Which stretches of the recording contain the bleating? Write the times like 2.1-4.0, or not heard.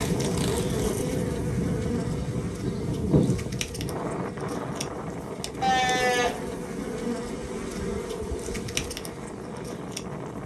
2.0-3.4, 5.6-6.5.